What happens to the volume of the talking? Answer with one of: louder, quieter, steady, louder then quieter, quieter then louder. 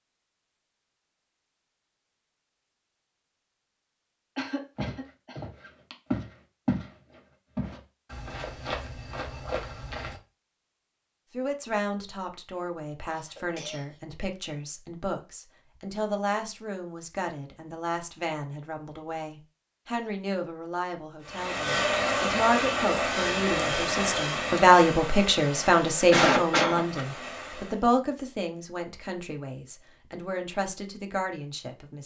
louder then quieter.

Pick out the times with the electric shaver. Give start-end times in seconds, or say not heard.
not heard.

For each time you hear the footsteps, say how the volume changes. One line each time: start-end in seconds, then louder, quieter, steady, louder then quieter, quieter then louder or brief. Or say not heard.
4.8-10.2 louder then quieter.